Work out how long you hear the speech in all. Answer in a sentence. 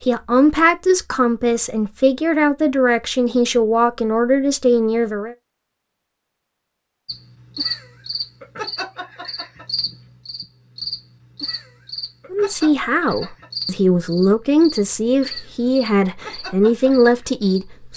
You can hear the speech for 11 seconds altogether.